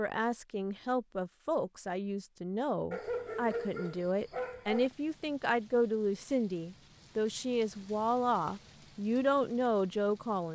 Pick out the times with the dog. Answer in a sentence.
The dog can be heard from 2.9 to 4.9 s.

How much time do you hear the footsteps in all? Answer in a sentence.
You can't hear the footsteps here.